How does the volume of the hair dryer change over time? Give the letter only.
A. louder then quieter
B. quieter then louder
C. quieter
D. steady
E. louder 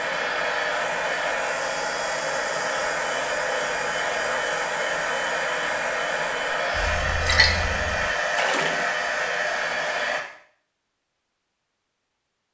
D.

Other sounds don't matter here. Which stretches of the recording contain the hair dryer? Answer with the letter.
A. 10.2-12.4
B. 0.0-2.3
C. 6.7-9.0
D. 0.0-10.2
D.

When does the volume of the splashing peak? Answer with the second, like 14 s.
7 s.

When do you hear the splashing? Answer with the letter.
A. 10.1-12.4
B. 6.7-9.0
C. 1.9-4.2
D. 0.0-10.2
B.